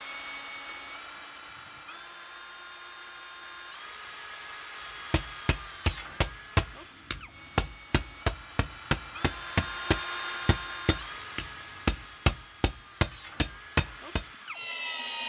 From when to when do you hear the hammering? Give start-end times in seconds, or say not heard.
5.1-14.2.